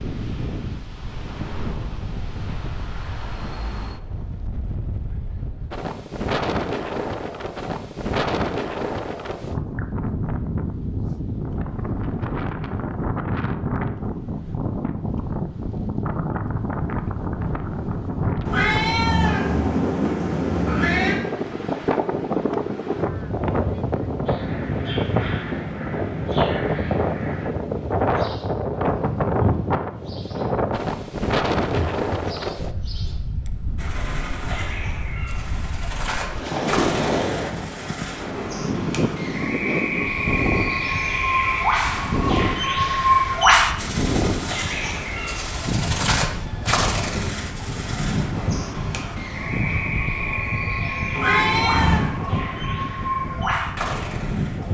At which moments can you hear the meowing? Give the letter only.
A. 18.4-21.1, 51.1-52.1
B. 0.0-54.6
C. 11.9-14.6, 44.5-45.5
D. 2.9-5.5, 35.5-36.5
A.